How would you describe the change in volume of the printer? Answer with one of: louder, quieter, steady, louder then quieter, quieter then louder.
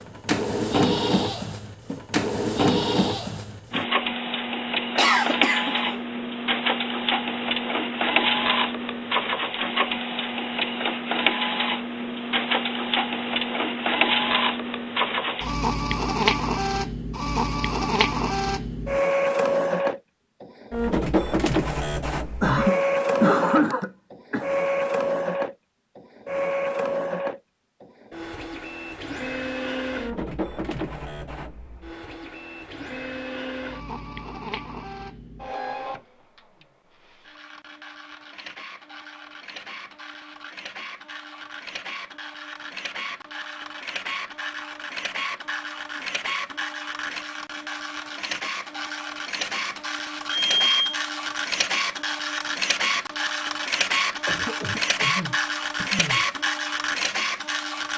quieter then louder.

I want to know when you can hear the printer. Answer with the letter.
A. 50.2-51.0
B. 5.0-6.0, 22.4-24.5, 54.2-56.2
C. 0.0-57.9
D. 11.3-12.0
C.